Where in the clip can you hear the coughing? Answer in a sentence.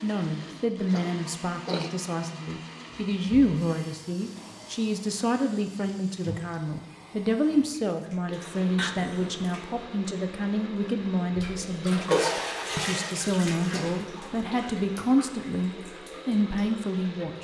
You can hear the coughing from 0.9 to 1.9 s and from 8.8 to 9.4 s.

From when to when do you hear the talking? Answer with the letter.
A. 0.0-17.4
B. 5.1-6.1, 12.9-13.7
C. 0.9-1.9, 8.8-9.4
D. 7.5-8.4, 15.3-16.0
A.